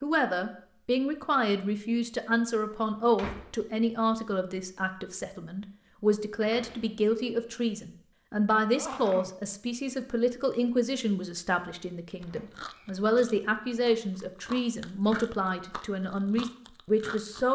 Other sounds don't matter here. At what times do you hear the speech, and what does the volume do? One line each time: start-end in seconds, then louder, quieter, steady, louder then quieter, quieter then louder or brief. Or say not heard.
0.0-17.5 steady.